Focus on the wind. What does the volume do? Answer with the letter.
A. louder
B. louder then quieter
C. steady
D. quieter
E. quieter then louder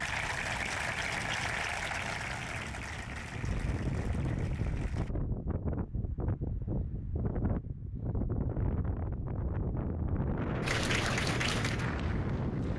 A.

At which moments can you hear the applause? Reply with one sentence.
You can hear the applause from 0.0 to 5.1 s and from 10.6 to 12.7 s.